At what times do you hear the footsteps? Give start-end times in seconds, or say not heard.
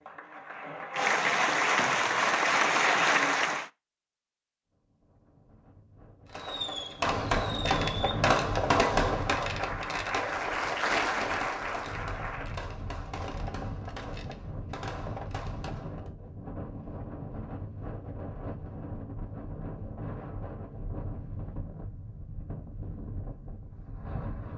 not heard.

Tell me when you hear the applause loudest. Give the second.
3 s.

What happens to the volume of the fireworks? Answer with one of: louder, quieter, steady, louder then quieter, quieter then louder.
quieter.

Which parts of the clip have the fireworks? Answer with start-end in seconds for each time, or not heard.
6.2-16.1.